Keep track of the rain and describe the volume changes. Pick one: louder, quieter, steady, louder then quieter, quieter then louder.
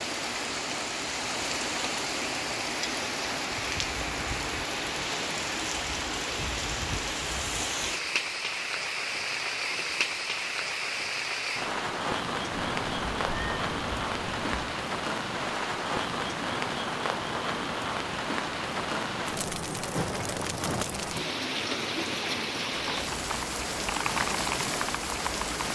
steady.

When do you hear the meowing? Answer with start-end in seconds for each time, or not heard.
12.5-14.8.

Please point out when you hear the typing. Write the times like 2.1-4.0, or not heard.
22.8-25.7.